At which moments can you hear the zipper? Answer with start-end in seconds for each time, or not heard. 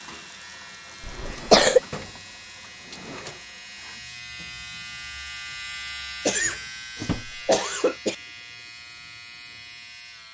not heard.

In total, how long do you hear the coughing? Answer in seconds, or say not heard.
3 s.